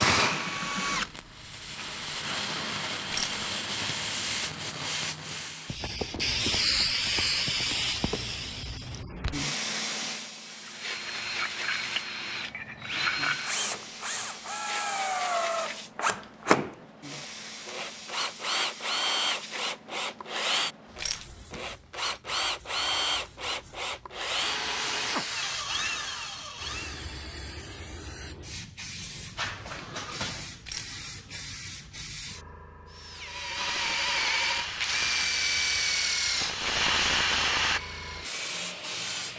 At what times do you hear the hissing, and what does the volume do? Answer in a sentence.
You can hear the hissing from 0.0 to 39.3 s, getting quieter then louder.